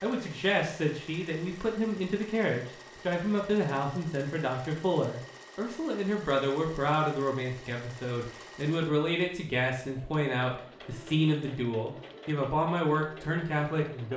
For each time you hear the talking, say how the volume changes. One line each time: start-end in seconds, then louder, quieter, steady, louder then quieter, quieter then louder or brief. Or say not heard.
0.0-14.1 steady.